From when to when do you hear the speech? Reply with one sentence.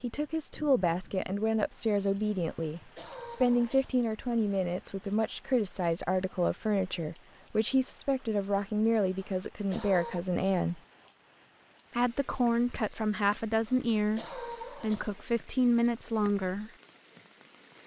You can hear the speech from 0.0 to 10.8 s and from 11.9 to 16.7 s.